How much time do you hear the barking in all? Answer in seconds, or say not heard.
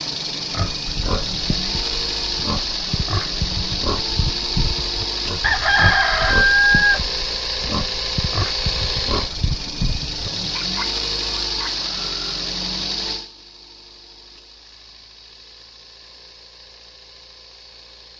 not heard.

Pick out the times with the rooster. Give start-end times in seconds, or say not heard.
5.4-7.1.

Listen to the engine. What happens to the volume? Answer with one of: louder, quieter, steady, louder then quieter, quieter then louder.
quieter.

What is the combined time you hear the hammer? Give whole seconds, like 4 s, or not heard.
not heard.